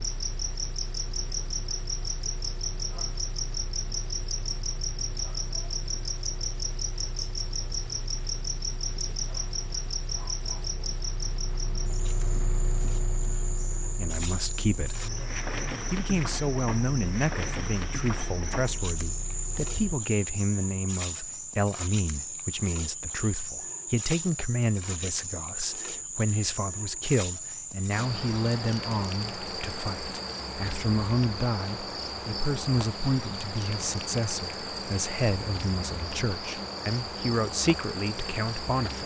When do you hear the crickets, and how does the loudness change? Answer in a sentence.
You can hear the crickets from 0.0 to 39.0 s, at a steady volume.